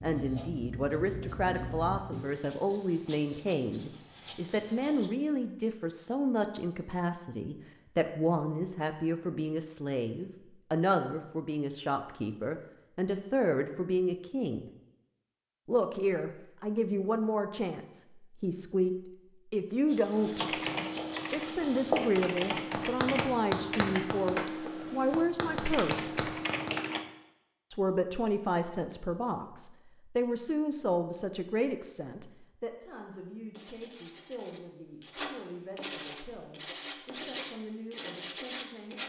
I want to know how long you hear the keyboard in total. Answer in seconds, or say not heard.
7 s.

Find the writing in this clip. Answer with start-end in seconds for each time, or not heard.
0.0-5.1, 19.9-26.8, 33.5-39.0.